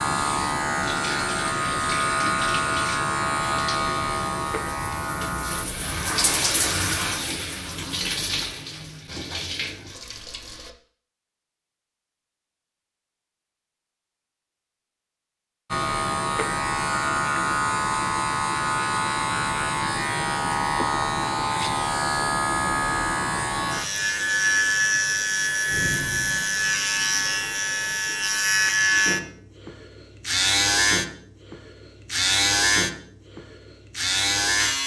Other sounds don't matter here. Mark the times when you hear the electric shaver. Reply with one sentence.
You can hear the electric shaver from 0.0 to 5.7 s and from 15.7 to 34.8 s.